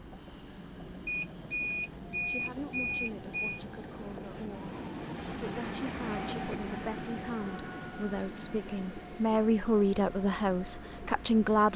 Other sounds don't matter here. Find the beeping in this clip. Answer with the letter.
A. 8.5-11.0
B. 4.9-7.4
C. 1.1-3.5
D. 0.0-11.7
C.